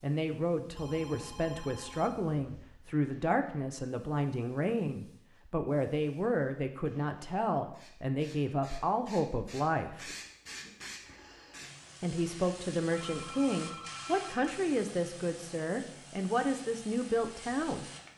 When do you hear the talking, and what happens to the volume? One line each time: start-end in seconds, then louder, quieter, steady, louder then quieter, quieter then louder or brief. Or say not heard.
0.0-10.1 steady
12.0-17.9 steady.